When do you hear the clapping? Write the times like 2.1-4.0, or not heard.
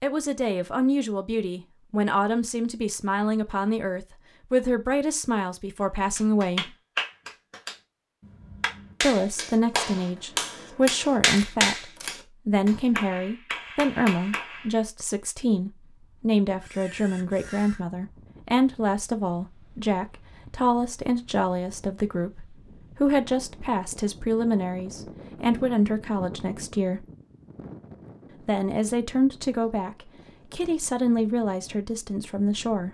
6.2-14.8.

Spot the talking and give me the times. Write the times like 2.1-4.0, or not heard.
0.0-6.8, 9.0-27.1, 28.4-32.9.